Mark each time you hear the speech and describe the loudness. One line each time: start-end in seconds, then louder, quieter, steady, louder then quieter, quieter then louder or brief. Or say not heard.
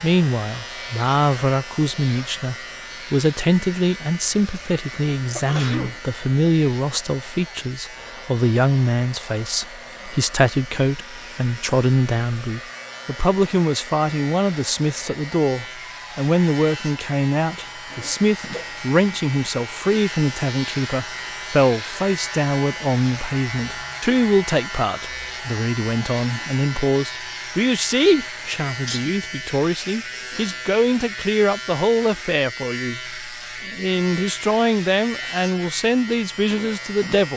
0.0-37.3 steady.